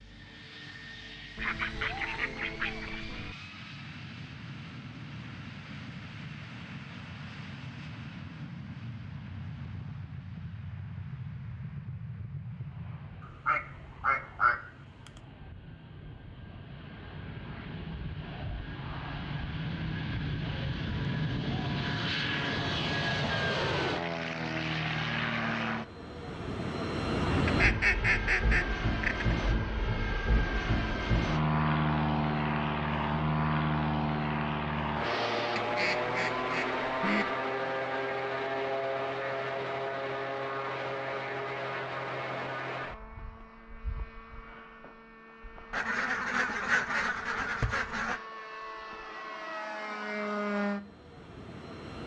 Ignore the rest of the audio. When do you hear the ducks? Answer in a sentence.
The ducks can be heard from 1.4 to 3.4 s, from 13.4 to 15.2 s, from 27.4 to 29.4 s, from 35.5 to 37.3 s and from 45.7 to 48.2 s.